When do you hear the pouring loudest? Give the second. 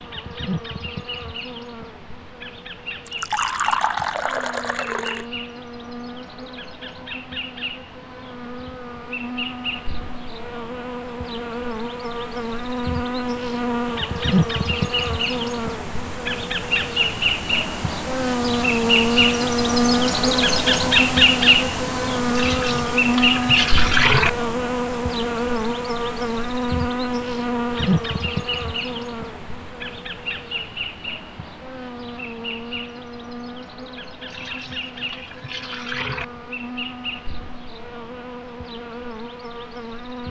24 s.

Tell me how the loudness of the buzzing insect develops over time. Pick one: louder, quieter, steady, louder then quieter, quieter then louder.
louder then quieter.